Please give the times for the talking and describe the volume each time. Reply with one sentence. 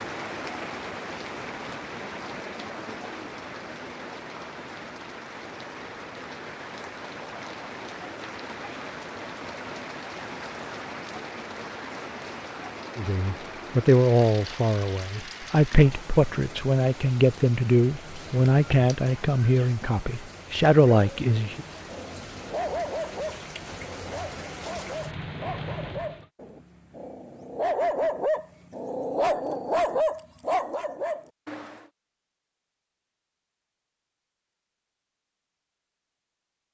The talking can be heard from 12.9 to 21.6 s, at a steady volume.